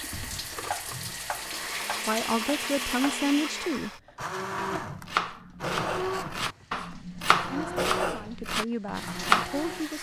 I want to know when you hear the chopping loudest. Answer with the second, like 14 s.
9 s.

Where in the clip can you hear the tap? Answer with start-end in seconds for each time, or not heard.
0.0-3.0, 6.3-9.9.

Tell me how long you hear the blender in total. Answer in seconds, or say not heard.
10 s.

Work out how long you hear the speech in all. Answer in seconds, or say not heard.
4 s.